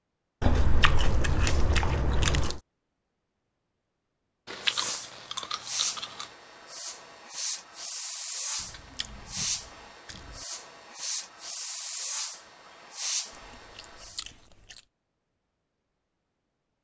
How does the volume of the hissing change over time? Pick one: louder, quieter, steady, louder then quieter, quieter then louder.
steady.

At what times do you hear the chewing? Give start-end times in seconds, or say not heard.
0.4-2.6, 4.5-6.2, 8.6-10.4, 13.3-14.8.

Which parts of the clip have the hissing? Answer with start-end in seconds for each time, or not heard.
4.6-14.2.